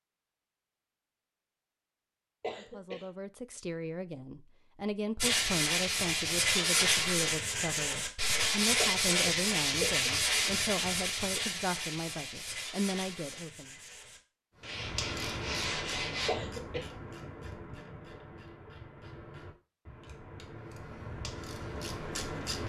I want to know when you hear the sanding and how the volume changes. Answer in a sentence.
The sanding can be heard from 5.2 to 16.3 s, getting quieter.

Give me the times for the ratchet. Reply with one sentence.
You can hear the ratchet from 14.6 to 22.6 s.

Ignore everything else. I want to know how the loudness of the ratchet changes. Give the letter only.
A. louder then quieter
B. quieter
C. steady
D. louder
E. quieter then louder
E.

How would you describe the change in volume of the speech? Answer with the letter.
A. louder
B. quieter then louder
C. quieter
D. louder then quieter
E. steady
E.